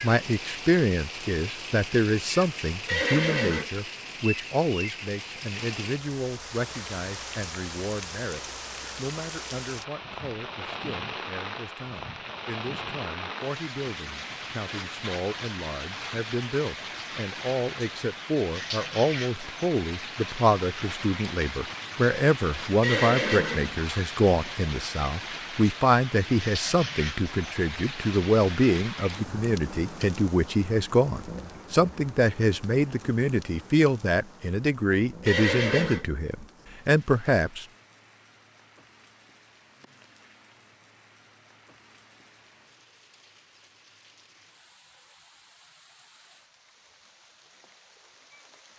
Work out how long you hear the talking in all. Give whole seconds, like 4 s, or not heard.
38 s.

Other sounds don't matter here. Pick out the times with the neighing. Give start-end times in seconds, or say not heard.
2.9-3.7, 22.8-23.8, 35.2-36.0.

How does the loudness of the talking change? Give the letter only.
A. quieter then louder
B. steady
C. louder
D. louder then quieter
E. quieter
A.